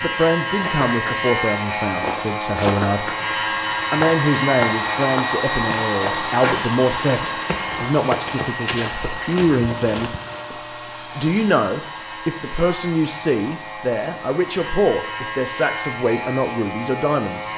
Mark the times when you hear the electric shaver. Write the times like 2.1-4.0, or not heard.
0.0-17.5.